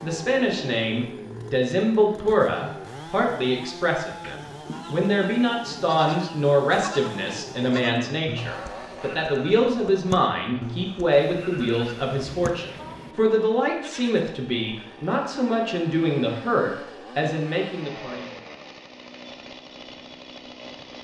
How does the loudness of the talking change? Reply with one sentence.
The volume of the talking stays about the same.